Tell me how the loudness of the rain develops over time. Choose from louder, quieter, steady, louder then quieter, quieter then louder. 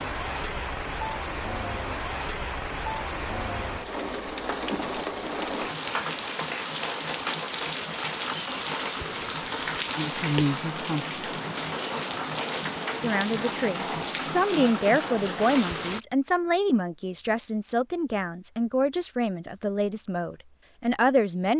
steady.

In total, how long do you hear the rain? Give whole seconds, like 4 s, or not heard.
16 s.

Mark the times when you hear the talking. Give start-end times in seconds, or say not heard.
9.9-11.2, 13.0-21.5.